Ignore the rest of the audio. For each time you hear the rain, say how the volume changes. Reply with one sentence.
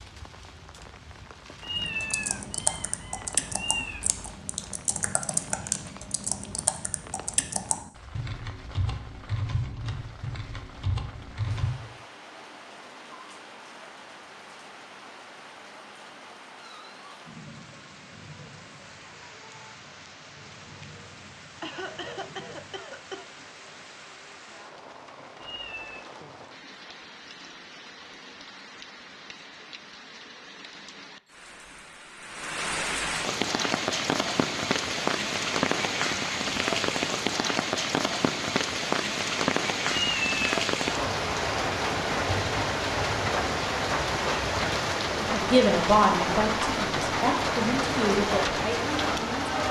You can hear the rain from 0.0 to 49.6 s, getting louder.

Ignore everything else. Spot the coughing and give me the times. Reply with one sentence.
You can hear the coughing from 21.6 to 23.4 s.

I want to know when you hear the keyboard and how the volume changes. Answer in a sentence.
The keyboard can be heard from 1.8 to 11.8 s, at a steady volume.